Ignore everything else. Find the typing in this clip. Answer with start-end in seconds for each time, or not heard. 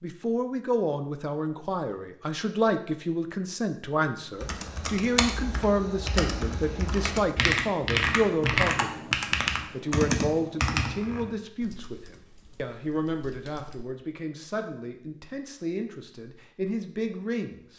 4.3-13.8.